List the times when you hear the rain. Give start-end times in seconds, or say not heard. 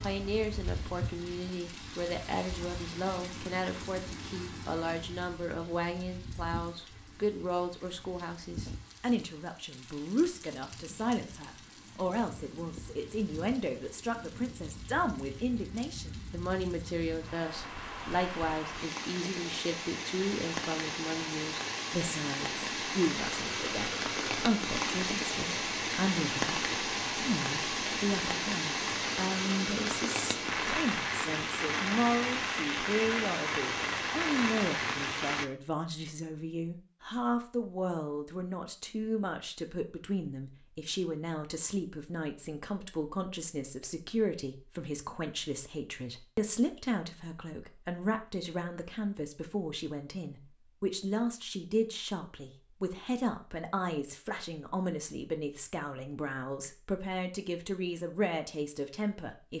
0.0-35.5.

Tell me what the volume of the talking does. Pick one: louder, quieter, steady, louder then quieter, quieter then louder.
steady.